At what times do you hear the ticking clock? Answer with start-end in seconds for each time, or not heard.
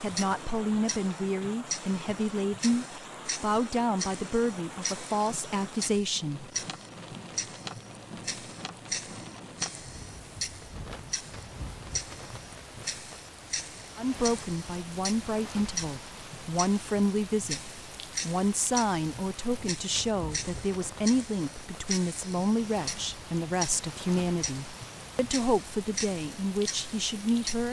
0.0-27.6.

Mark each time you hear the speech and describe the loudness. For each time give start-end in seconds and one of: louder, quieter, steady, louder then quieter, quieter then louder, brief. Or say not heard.
0.0-6.5 steady
13.9-27.6 steady.